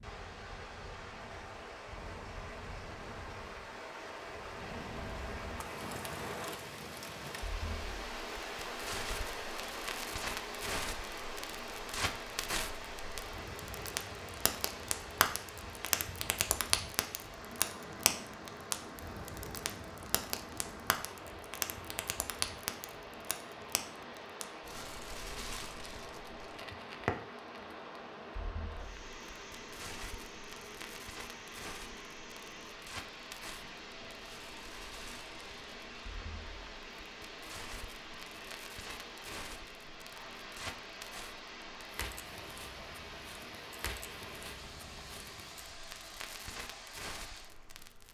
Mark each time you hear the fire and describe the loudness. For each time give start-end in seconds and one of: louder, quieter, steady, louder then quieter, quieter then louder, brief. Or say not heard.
0.0-48.0 louder then quieter.